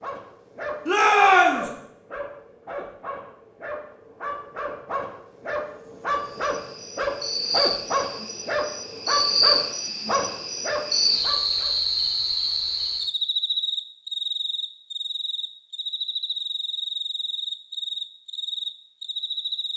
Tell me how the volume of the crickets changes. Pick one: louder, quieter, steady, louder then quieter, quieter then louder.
louder then quieter.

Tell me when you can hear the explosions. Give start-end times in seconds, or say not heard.
not heard.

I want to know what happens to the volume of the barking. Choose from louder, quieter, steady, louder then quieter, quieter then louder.
louder.